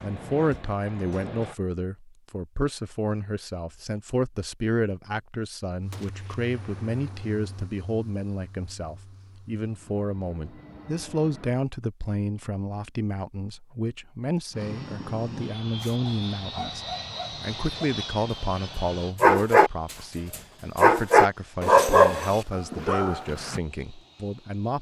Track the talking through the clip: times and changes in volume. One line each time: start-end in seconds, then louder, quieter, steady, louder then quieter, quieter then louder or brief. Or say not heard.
0.0-24.7 steady.